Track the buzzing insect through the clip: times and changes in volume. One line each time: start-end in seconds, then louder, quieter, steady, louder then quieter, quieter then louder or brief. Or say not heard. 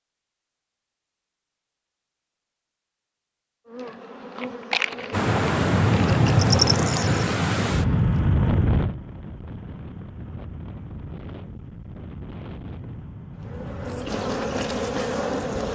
3.6-8.3 louder then quieter
13.4-15.7 brief.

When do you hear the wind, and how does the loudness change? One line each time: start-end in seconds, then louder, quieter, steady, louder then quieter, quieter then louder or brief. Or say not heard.
5.1-15.7 quieter.